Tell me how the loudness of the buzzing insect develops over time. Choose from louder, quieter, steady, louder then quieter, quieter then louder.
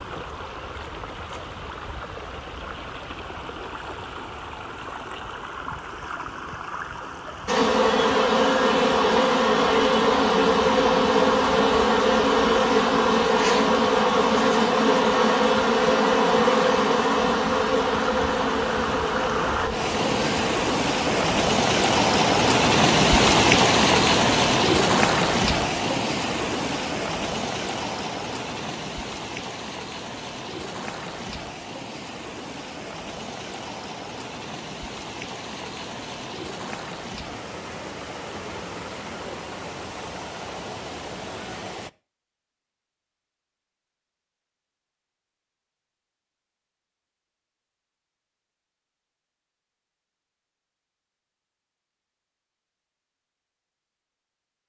quieter.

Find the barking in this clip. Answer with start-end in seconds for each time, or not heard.
not heard.